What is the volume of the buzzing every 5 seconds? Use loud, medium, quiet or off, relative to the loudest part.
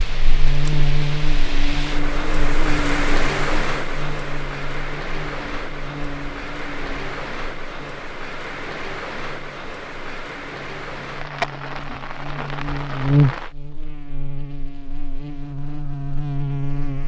loud, quiet, loud, loud.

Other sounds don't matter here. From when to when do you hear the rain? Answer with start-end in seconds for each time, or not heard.
0.0-13.6.